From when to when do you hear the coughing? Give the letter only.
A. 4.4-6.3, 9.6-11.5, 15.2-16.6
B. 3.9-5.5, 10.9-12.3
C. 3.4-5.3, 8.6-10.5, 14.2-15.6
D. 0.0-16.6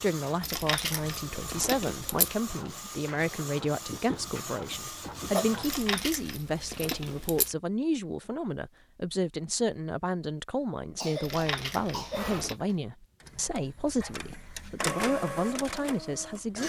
B.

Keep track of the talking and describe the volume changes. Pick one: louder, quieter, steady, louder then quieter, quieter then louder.
steady.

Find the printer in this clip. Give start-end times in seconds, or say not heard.
0.0-5.9, 12.1-16.6.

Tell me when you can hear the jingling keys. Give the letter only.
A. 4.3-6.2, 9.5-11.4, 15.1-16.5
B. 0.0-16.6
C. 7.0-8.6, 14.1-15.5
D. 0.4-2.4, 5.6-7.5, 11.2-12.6
D.